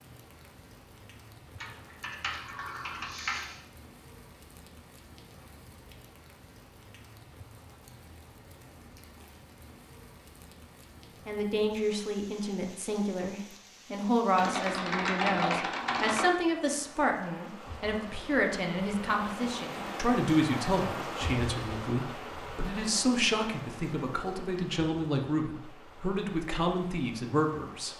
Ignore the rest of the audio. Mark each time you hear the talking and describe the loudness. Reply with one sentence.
You can hear the talking from 11.2 to 27.9 s, at a steady volume.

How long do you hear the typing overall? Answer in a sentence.
You can hear the typing for 4 seconds altogether.